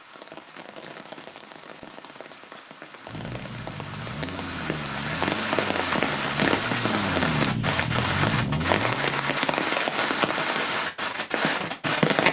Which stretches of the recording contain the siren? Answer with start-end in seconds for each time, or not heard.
not heard.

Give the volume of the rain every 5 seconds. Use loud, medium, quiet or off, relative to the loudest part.
quiet, loud, loud.